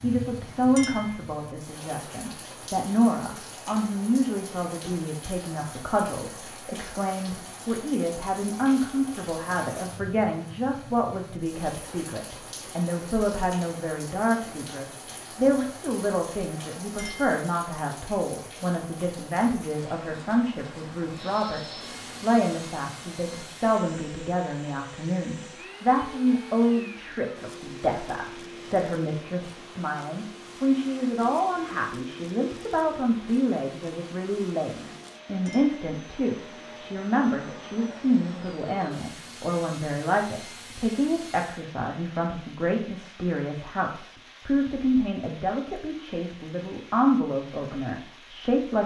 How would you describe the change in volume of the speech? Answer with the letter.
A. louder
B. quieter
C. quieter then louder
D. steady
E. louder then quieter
D.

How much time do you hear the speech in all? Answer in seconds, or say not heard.
49 s.